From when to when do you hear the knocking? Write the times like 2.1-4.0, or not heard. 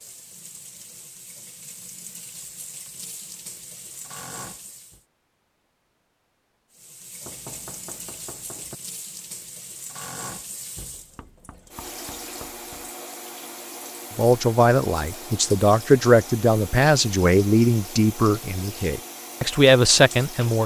7.2-8.8, 10.9-12.9.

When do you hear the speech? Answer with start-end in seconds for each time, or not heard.
14.2-20.6.